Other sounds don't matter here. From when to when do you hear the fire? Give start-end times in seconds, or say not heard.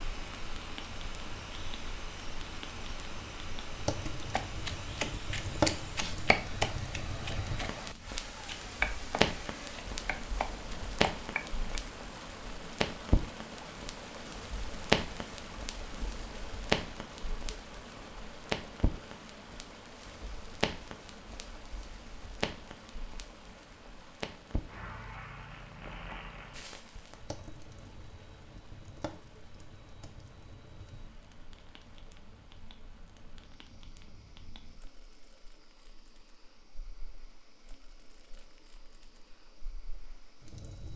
0.0-40.9.